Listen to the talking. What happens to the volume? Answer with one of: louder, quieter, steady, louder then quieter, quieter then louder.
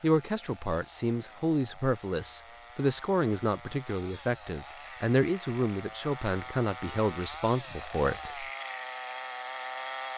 steady.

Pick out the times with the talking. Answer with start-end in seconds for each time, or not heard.
0.0-8.4.